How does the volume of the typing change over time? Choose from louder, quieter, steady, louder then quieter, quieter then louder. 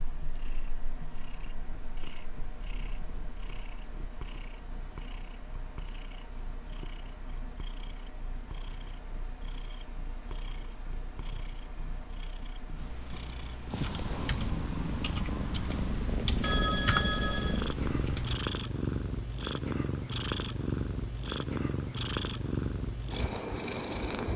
louder then quieter.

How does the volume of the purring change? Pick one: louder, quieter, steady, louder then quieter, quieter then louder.
louder.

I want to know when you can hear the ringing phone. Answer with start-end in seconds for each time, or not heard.
16.4-17.6.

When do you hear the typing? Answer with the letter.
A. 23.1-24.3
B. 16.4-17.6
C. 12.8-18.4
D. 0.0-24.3
C.